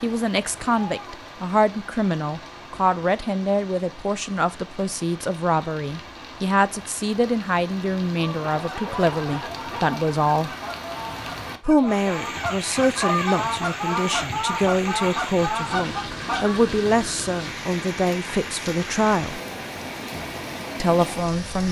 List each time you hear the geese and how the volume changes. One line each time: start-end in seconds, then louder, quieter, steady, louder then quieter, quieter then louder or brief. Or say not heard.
8.6-16.6 louder.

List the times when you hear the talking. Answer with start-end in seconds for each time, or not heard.
0.0-10.5, 11.6-19.4, 20.8-21.6.